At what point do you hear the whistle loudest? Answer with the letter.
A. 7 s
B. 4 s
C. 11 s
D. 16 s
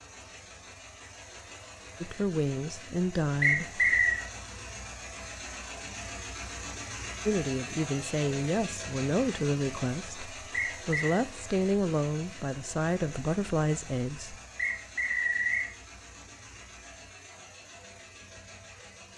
B.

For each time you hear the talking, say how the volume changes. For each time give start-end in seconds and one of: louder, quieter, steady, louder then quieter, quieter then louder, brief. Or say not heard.
2.0-3.8 brief
7.2-14.3 steady.